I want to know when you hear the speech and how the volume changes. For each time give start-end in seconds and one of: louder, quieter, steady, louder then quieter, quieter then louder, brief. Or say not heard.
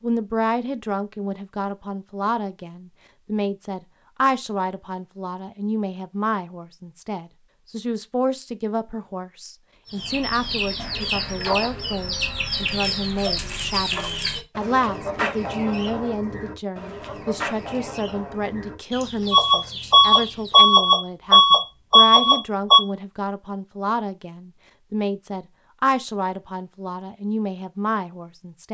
0.0-28.6 steady.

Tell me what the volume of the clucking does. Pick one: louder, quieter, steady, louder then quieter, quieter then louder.
quieter.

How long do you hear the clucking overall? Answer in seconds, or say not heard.
11 s.